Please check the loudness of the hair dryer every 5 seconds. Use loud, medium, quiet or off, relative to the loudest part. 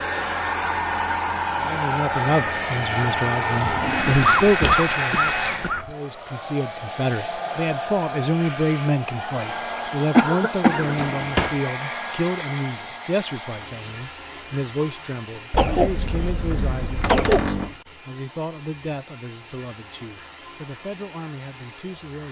loud, medium, medium, quiet, quiet.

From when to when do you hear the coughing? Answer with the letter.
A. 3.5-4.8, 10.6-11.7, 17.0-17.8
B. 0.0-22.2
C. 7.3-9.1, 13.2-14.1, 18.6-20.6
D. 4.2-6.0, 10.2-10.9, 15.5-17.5
D.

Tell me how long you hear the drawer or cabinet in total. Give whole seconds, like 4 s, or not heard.
3 s.